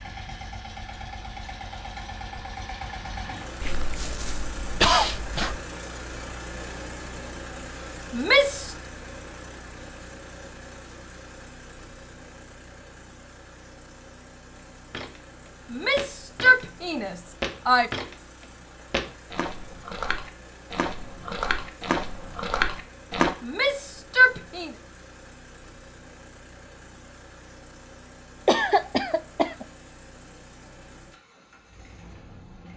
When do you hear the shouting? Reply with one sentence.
The shouting can be heard from 8.1 to 8.8 s, from 15.7 to 17.9 s and from 23.4 to 24.7 s.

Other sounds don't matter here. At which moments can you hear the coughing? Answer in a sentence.
You can hear the coughing from 3.6 to 5.6 s and from 28.4 to 29.6 s.